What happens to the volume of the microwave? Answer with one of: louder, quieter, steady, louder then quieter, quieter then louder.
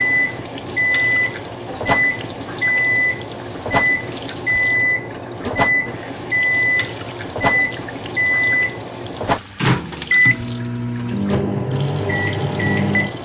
steady.